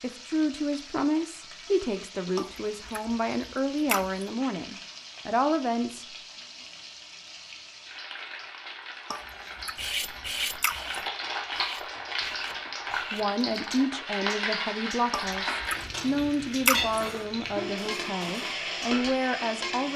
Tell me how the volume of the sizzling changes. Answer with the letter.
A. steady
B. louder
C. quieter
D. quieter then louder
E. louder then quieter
B.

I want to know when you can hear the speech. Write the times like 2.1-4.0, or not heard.
0.0-6.0, 13.1-19.9.